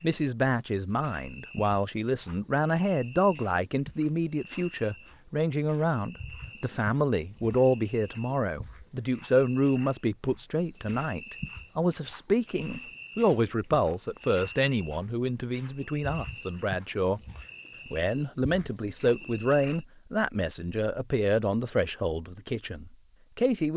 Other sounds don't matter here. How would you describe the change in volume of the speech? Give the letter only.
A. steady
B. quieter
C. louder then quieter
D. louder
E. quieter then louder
A.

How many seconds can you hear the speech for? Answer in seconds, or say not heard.
23 s.